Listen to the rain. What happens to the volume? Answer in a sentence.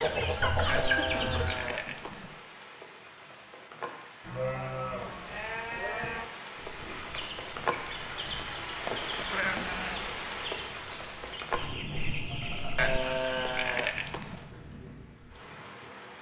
The loudness of the rain goes up, then down.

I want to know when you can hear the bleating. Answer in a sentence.
The bleating can be heard from 0.5 to 2.4 s, from 4.2 to 6.3 s, from 9.2 to 10.1 s and from 12.6 to 14.4 s.